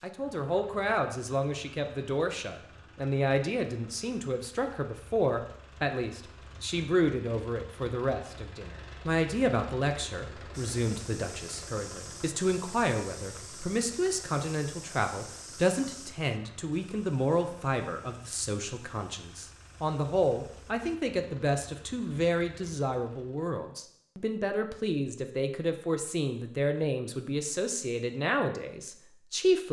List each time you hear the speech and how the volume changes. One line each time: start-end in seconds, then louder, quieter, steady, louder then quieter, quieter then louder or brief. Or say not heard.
0.0-29.6 steady.